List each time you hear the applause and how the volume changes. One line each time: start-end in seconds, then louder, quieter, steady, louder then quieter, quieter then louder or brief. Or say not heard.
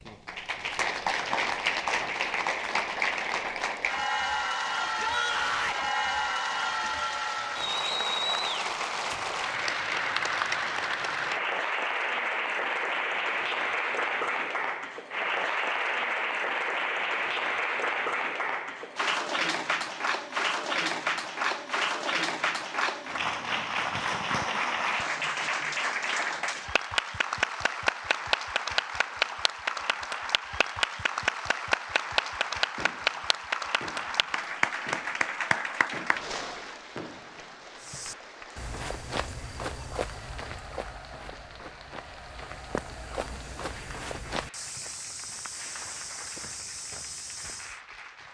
0.0-48.2 quieter.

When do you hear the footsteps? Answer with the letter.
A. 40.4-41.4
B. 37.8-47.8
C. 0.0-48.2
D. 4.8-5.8
B.